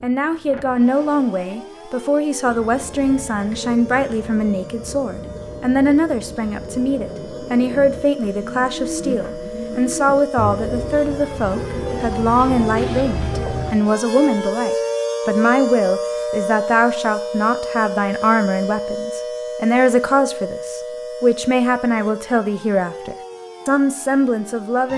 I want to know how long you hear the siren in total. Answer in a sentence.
You can hear the siren for 25 seconds altogether.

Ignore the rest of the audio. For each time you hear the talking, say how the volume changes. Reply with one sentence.
You can hear the talking from 0.0 to 24.9 s, at a steady volume.